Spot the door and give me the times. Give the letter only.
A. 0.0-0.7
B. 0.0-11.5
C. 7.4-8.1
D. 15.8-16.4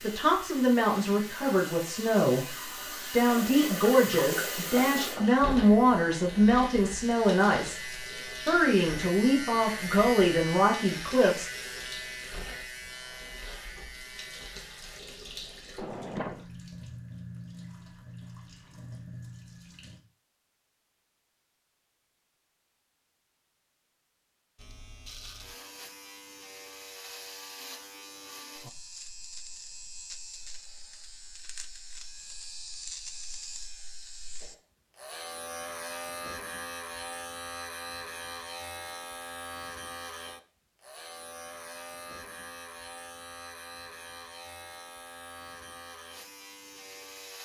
D.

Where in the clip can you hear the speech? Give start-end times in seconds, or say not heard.
0.0-11.5.